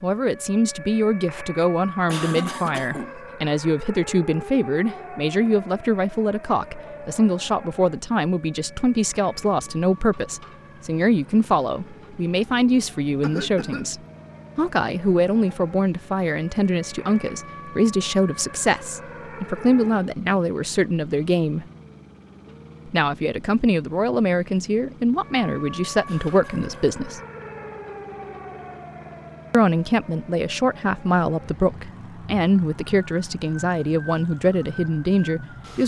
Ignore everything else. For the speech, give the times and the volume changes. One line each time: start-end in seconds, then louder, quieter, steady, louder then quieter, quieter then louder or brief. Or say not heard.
0.0-21.6 steady
22.9-27.2 steady
29.5-35.8 steady.